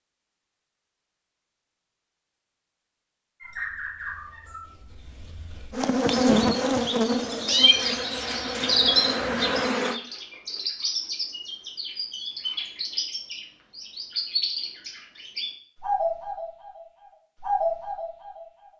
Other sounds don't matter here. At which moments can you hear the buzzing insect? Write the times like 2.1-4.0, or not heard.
5.7-10.0.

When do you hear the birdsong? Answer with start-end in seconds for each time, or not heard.
3.4-18.6.